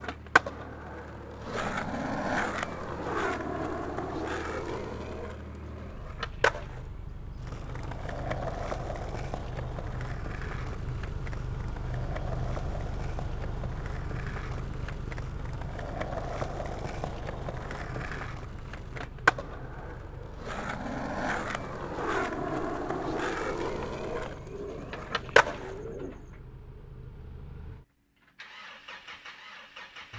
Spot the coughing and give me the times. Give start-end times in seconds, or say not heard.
not heard.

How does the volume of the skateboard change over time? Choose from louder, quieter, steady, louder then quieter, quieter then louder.
quieter then louder.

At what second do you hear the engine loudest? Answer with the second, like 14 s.
12 s.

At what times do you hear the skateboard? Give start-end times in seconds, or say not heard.
0.0-25.8.